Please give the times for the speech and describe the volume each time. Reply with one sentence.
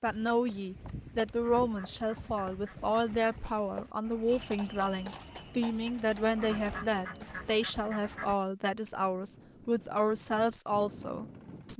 You can hear the speech from 0.0 to 11.7 s, at a steady volume.